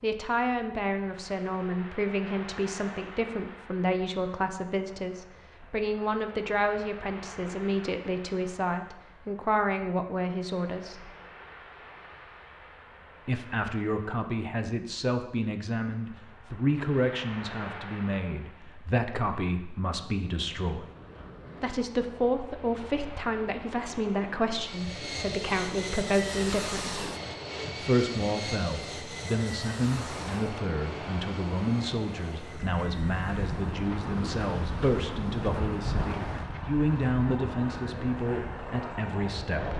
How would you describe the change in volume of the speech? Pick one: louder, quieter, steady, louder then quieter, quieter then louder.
steady.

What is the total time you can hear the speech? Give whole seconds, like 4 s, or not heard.
36 s.